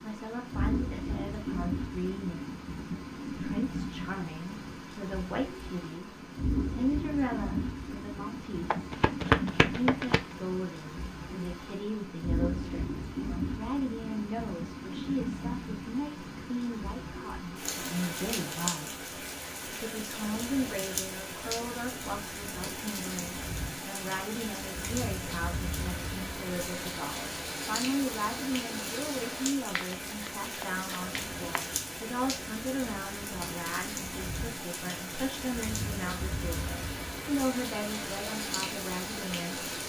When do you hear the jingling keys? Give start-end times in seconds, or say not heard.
not heard.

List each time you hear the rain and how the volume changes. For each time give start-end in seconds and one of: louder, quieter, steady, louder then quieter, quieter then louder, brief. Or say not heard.
0.0-39.8 steady.